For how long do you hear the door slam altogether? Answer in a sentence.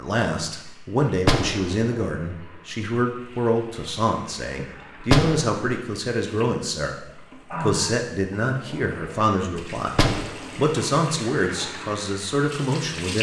The door slam can be heard for 2 seconds in total.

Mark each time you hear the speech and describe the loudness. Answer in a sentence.
You can hear the speech from 0.0 to 9.9 s, at a steady volume; and briefly from 10.6 to 13.1 s.